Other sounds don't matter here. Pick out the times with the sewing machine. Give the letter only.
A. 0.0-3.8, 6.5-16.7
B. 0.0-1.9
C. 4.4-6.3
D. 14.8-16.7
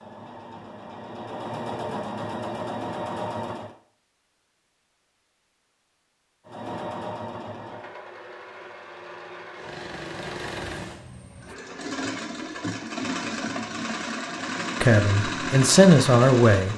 A.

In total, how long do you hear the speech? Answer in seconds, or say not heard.
2 s.